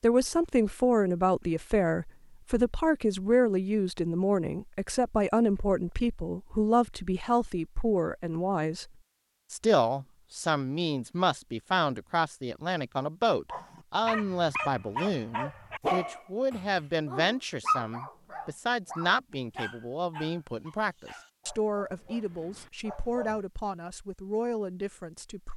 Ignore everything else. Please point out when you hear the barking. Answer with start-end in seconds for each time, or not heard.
13.5-23.4.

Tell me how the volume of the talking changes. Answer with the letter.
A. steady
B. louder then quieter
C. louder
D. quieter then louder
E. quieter
E.